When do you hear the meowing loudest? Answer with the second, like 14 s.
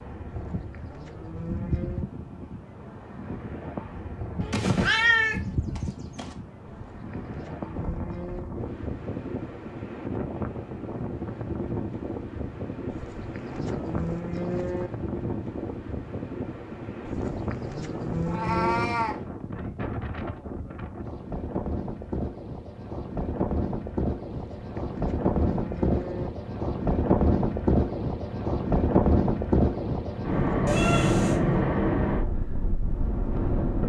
5 s.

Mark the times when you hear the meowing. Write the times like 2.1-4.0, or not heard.
4.4-6.3, 18.2-19.2, 30.6-31.4.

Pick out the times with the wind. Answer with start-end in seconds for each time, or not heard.
0.0-33.8.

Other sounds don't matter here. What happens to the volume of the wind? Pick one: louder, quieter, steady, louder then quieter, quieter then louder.
louder.